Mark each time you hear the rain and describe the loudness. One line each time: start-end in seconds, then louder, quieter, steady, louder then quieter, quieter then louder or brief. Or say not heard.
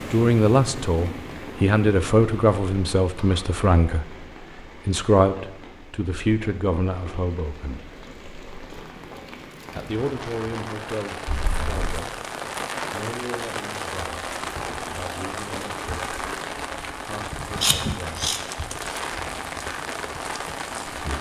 0.0-21.1 quieter then louder.